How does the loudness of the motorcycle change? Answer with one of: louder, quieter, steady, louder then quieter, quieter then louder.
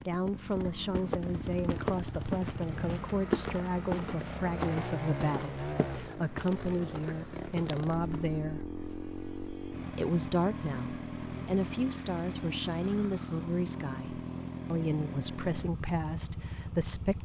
steady.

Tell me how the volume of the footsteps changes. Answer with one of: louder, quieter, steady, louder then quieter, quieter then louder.
quieter.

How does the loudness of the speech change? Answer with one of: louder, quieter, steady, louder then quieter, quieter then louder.
steady.